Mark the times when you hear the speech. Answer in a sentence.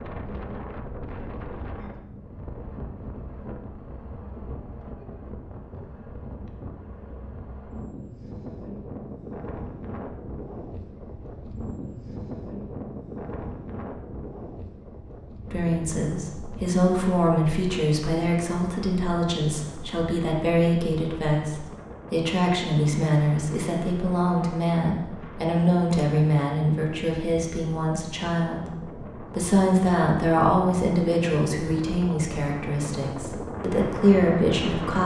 You can hear the speech from 15.5 to 35.0 s.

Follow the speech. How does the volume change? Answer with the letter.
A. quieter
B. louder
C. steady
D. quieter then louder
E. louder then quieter
C.